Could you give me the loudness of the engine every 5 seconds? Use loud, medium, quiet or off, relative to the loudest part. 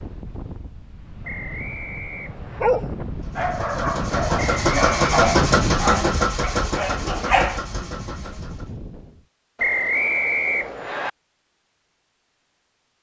loud, loud, off.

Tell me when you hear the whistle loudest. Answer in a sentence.
The loudest moment of the whistle is at 10 seconds.